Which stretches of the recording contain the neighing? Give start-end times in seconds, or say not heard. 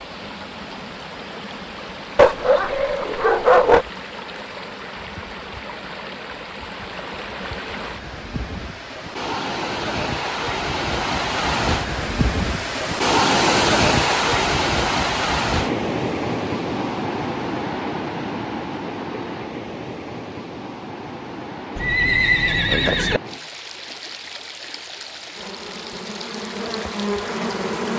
21.8-23.2.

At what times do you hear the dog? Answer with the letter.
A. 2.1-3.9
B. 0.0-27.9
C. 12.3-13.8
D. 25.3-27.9
A.